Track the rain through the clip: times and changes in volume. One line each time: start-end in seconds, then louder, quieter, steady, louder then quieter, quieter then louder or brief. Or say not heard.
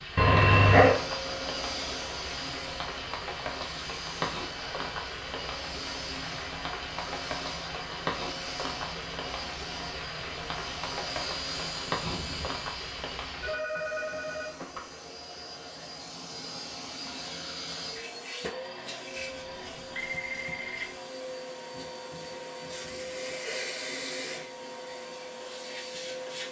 0.0-13.6 steady.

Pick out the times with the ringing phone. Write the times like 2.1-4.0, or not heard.
0.1-0.9, 13.4-14.8, 19.1-20.9.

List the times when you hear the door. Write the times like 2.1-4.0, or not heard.
not heard.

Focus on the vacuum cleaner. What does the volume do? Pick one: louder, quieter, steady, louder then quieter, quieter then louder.
steady.